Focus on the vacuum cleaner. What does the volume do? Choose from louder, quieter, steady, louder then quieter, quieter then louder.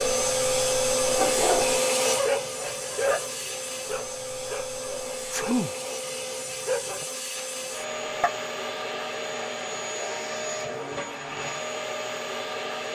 quieter.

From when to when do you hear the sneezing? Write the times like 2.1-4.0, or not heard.
5.3-5.8.